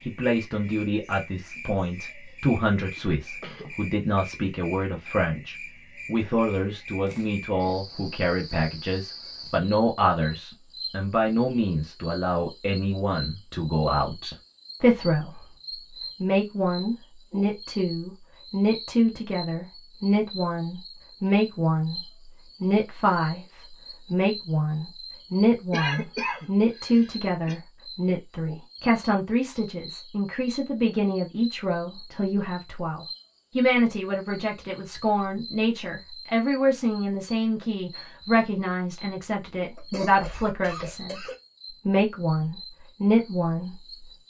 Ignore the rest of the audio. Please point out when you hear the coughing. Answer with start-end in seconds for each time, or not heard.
2.8-3.8, 25.7-27.6, 39.8-41.4.